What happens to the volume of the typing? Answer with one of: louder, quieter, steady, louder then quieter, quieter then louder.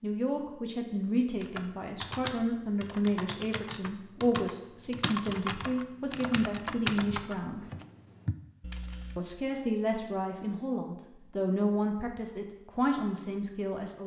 louder then quieter.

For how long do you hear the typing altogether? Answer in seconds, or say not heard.
8 s.